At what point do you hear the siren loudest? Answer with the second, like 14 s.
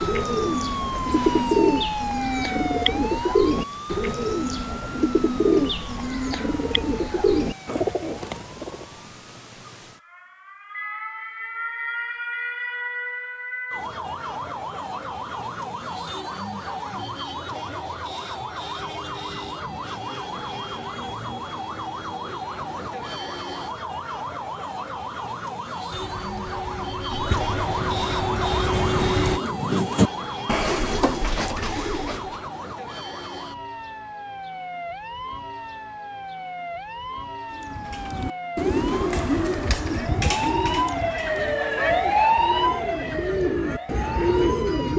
42 s.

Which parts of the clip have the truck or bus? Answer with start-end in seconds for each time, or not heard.
25.9-29.4.